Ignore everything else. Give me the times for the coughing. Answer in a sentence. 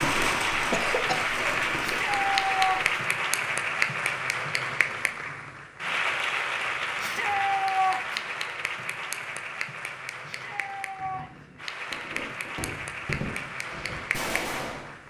You can hear the coughing from 0.7 to 1.6 s.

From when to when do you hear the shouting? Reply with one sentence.
You can hear the shouting from 1.8 to 3.0 s, from 7.0 to 8.2 s and from 10.2 to 11.5 s.